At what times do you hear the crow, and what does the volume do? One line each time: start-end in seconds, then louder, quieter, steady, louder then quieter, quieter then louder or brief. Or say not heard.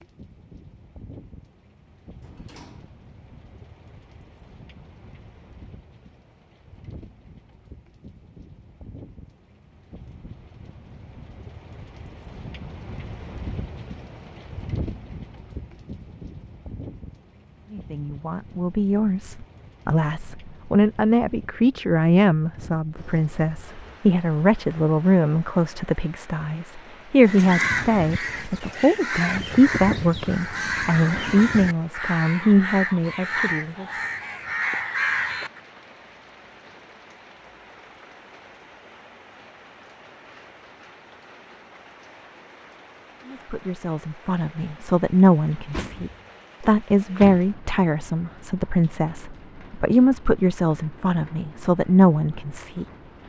27.2-35.6 steady.